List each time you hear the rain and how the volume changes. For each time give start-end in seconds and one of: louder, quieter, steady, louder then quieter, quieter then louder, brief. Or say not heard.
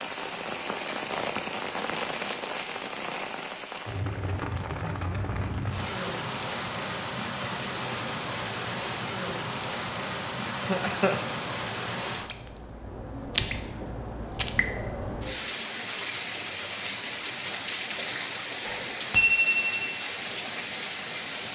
0.0-21.5 steady.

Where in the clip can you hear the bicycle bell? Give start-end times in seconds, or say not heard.
18.6-19.9.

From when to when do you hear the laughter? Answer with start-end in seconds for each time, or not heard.
10.5-11.2.